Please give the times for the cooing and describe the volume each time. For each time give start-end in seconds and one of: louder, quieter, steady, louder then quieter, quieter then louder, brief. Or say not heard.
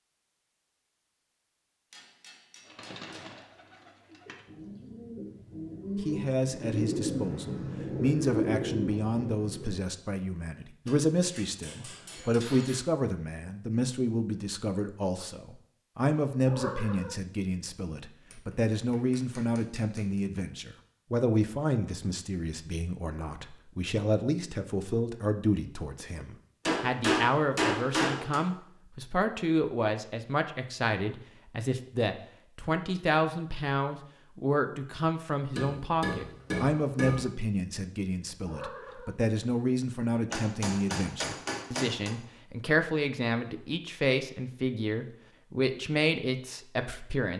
2.6-10.0 louder.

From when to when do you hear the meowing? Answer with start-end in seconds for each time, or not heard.
16.4-17.2, 38.4-39.1.